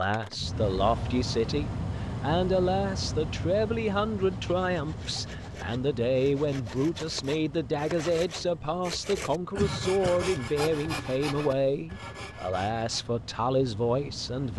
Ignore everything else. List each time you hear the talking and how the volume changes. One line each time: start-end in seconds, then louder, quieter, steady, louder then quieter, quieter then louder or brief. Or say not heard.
0.0-14.5 steady.